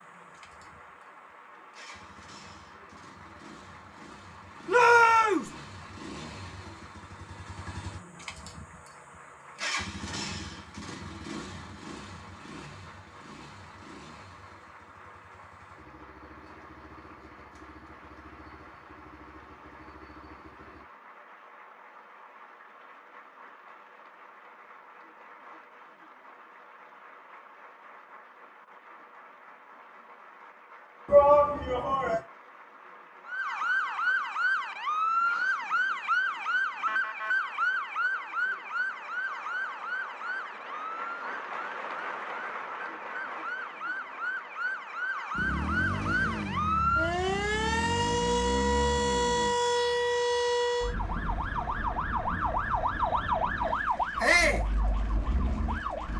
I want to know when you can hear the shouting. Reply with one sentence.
You can hear the shouting from 4.7 to 5.5 s, from 31.1 to 32.2 s and from 54.2 to 54.6 s.